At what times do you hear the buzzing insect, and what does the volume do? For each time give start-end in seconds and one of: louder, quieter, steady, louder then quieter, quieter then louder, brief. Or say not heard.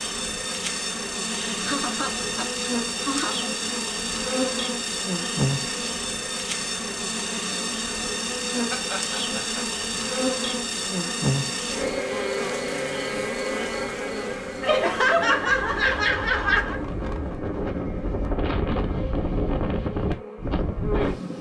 0.0-21.3 quieter.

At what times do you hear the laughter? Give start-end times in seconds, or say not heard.
1.5-3.5, 8.5-9.8, 14.6-16.8.